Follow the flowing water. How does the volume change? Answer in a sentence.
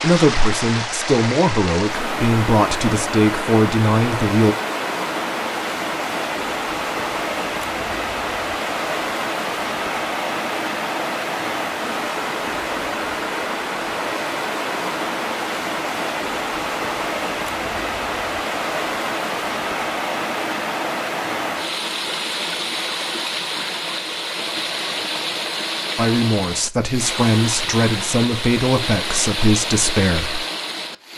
The volume of the flowing water stays about the same.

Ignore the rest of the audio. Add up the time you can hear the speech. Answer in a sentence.
The speech can be heard for 9 seconds in total.